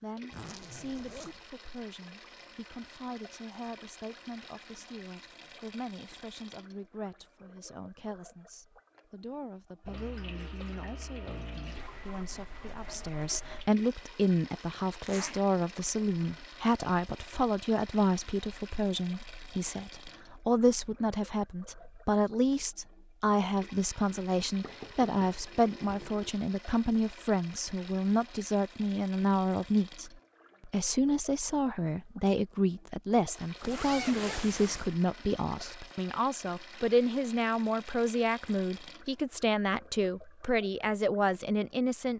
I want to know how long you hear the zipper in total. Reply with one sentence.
You can hear the zipper for 3 seconds altogether.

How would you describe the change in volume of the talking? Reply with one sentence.
The volume of the talking goes up.